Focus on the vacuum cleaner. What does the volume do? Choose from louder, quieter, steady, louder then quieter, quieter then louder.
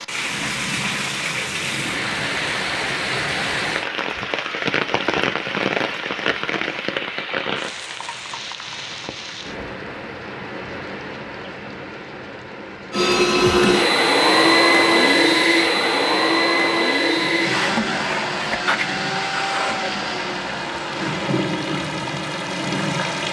quieter.